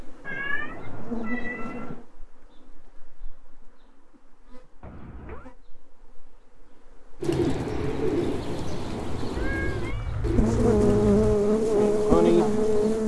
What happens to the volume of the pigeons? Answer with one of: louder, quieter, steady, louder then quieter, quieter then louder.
quieter.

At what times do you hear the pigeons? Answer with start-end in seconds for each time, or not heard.
7.2-13.0.